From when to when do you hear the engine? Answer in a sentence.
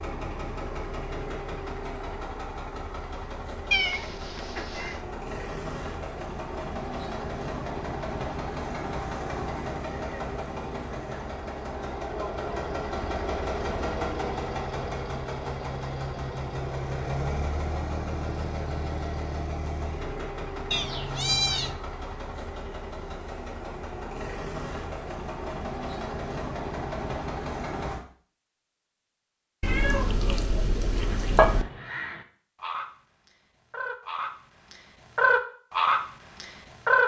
The engine can be heard from 0.0 to 28.1 s.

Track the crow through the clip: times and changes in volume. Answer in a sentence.
The crow can be heard from 31.1 to 37.0 s, getting louder.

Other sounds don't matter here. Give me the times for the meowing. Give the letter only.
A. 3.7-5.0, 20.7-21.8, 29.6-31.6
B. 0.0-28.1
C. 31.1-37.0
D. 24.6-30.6
A.